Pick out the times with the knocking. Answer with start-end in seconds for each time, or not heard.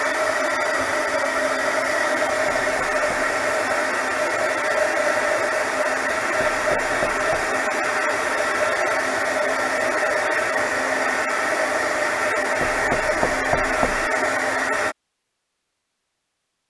2.5-3.4, 6.4-7.5, 12.6-14.1.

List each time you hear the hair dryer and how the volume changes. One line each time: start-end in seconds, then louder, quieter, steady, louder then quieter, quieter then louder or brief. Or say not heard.
0.0-14.9 steady.